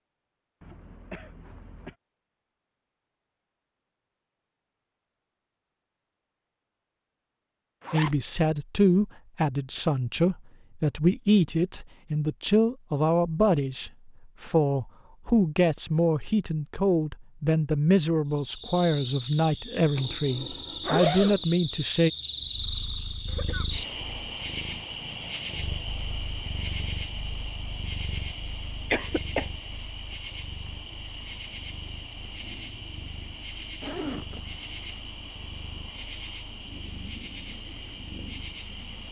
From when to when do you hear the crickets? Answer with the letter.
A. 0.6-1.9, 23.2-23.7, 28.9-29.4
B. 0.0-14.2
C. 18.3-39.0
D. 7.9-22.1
C.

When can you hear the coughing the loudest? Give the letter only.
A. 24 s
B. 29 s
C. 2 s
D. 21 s
B.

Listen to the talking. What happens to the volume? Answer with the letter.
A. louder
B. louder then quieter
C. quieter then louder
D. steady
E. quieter
D.